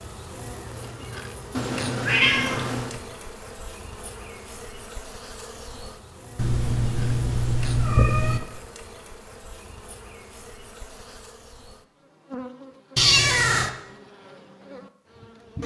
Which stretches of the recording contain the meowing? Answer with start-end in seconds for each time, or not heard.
1.6-3.0, 6.3-8.4, 12.9-13.7.